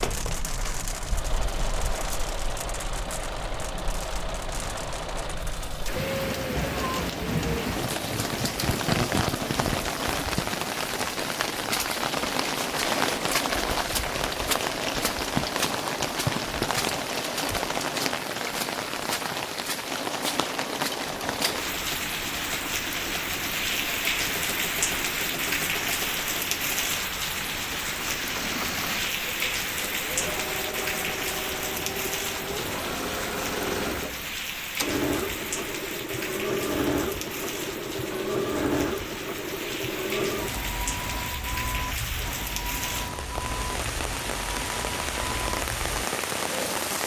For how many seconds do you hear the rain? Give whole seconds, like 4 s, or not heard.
47 s.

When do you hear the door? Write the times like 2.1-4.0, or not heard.
not heard.